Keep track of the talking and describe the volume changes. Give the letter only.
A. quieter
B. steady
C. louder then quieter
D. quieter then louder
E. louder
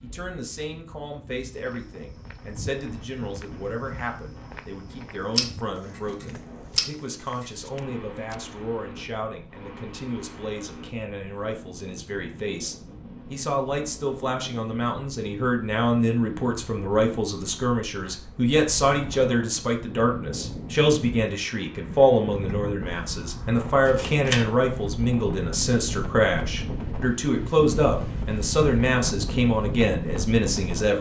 E.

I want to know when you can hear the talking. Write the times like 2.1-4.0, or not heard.
0.0-30.9.